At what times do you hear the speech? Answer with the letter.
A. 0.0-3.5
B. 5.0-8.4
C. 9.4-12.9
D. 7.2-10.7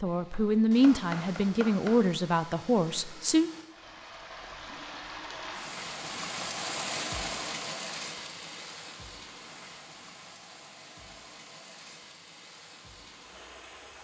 A.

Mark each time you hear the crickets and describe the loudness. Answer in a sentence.
The crickets can't be heard in this clip.